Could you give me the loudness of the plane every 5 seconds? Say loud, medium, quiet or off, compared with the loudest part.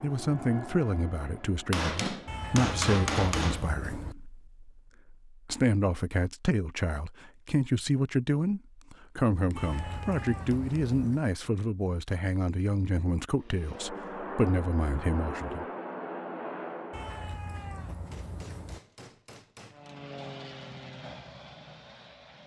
medium, off, loud, loud, medium.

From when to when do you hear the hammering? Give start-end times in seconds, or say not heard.
1.7-3.7, 9.3-10.8, 18.1-20.0.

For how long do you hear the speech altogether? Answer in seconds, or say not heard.
16 s.